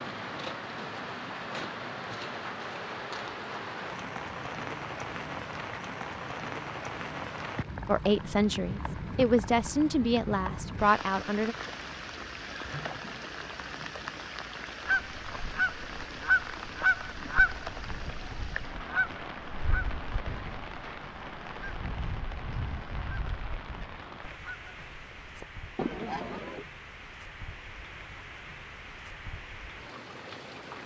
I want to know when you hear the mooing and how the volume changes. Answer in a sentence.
You can't hear the mooing here.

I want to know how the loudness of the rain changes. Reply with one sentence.
The volume of the rain goes down.